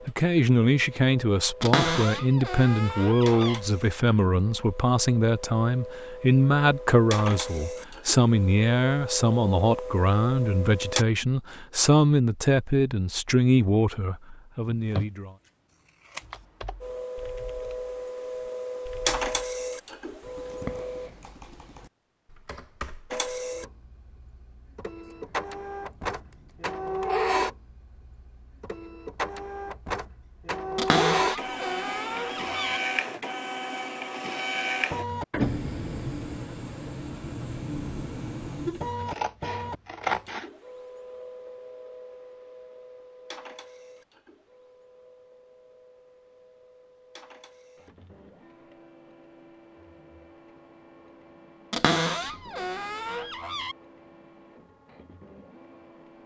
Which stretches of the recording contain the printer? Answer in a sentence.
The printer can be heard from 0.0 to 11.1 s, from 16.8 to 21.1 s and from 23.1 to 56.2 s.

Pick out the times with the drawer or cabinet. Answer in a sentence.
You can hear the drawer or cabinet from 1.6 to 3.6 s, from 30.8 to 32.8 s and from 51.7 to 53.8 s.